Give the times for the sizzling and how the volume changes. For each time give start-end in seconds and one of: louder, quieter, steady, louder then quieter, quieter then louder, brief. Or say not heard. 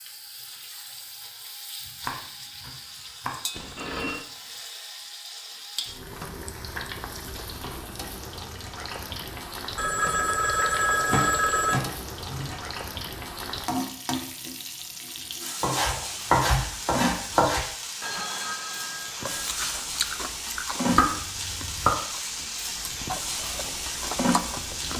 0.0-24.9 louder.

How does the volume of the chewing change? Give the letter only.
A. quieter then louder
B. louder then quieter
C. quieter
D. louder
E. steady
A.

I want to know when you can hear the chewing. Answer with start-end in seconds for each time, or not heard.
19.1-24.9.